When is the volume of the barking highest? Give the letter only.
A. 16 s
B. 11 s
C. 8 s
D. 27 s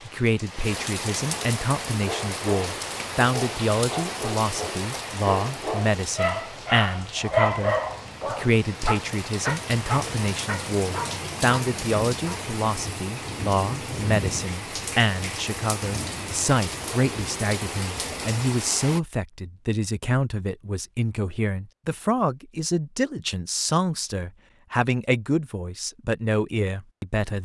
C.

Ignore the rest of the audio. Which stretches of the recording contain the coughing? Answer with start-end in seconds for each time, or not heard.
not heard.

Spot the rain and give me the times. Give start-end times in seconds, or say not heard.
0.0-19.0.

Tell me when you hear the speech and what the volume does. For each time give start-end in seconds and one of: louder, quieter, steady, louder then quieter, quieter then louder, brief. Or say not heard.
0.1-27.3 steady.